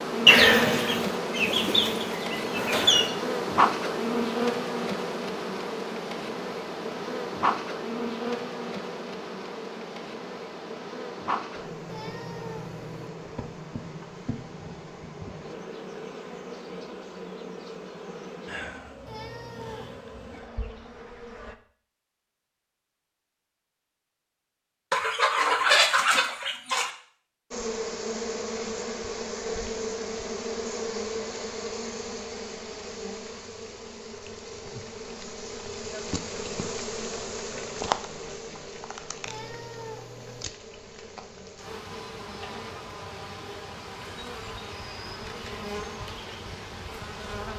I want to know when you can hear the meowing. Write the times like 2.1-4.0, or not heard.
11.8-13.1, 19.1-20.1, 39.2-40.5.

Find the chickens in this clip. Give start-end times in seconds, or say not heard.
0.2-3.1, 24.9-26.9.